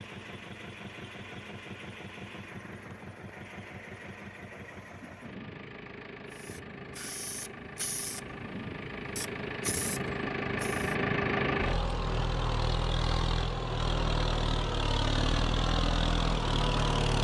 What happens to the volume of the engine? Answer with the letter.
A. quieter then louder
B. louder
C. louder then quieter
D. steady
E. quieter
B.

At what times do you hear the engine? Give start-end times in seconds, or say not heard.
0.0-17.1.